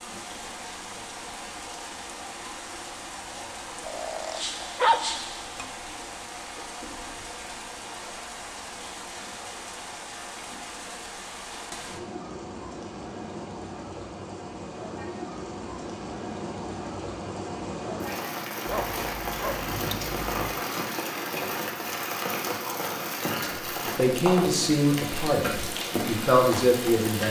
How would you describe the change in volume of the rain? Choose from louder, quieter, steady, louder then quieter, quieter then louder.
louder.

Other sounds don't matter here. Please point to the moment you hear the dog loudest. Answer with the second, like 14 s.
5 s.